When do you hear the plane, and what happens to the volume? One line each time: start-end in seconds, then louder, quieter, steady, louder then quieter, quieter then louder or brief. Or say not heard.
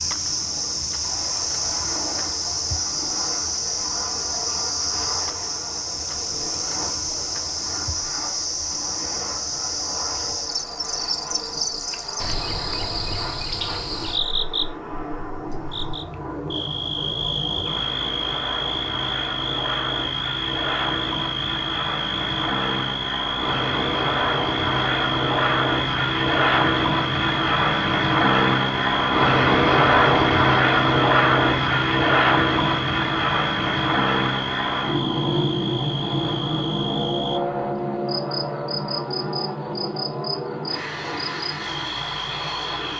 0.0-42.9 louder then quieter.